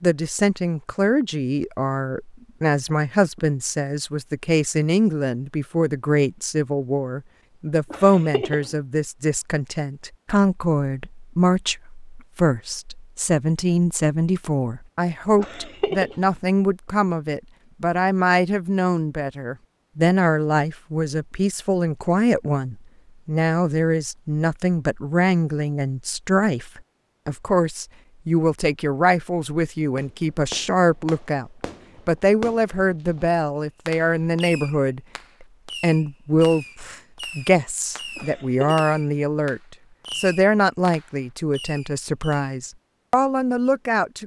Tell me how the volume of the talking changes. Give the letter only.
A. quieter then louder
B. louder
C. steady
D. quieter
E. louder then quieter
C.